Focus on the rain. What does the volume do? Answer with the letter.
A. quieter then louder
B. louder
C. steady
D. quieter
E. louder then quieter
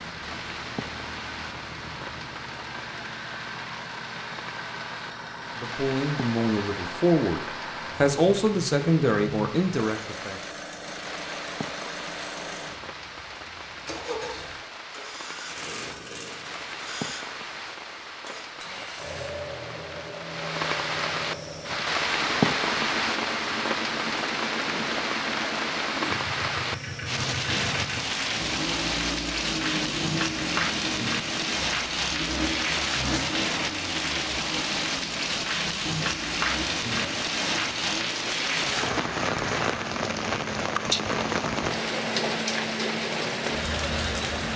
B.